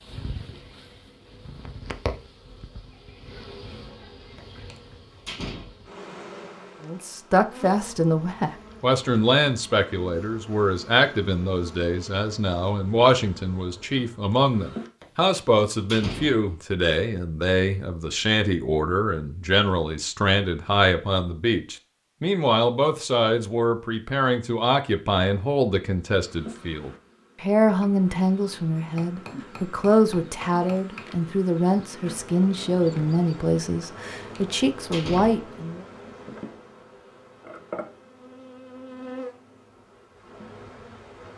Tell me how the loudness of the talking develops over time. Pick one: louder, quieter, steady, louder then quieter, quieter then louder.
steady.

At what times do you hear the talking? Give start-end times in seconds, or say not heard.
6.8-35.9.